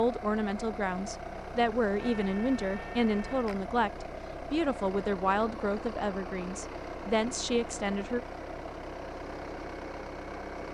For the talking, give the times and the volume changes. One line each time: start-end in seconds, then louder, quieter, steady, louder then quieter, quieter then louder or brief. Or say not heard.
0.0-8.2 steady.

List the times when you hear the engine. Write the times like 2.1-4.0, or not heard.
0.0-10.6.